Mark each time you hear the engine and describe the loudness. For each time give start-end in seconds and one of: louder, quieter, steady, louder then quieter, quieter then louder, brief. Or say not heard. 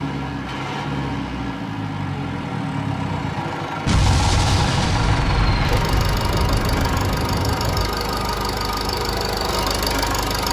0.0-10.4 steady.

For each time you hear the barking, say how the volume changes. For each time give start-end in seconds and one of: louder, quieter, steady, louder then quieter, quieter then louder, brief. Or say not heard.
not heard.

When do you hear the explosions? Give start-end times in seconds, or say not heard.
3.9-7.8.